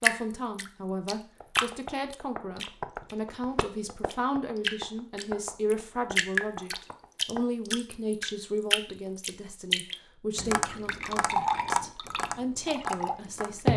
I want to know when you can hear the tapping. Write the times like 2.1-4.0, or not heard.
1.4-7.4, 10.3-13.6.